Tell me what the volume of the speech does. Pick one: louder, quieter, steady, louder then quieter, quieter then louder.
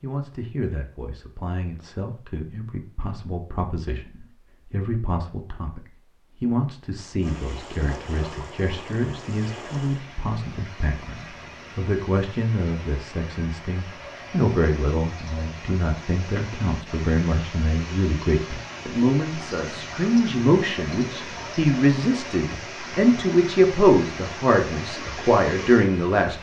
louder.